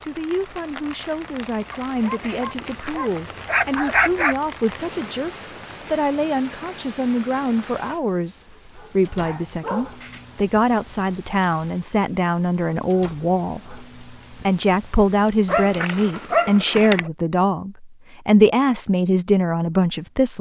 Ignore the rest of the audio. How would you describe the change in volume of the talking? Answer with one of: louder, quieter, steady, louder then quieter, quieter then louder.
louder.